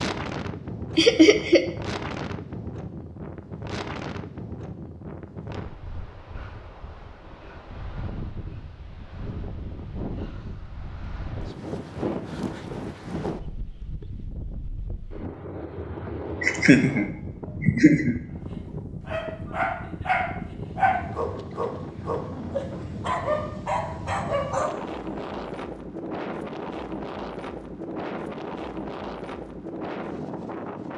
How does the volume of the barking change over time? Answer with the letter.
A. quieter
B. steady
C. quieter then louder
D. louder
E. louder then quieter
B.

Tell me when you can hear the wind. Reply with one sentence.
The wind can be heard from 0.0 to 30.9 s.